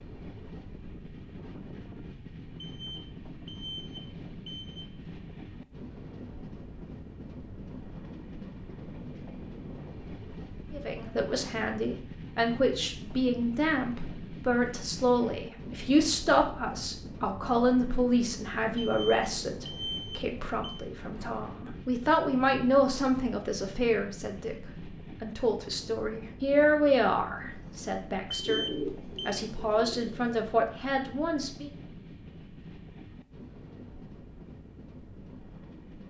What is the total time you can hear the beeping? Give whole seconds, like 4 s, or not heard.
5 s.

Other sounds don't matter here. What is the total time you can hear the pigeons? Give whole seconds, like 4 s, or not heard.
2 s.